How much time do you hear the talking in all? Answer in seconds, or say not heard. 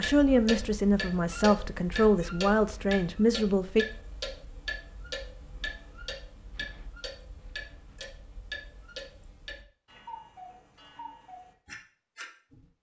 4 s.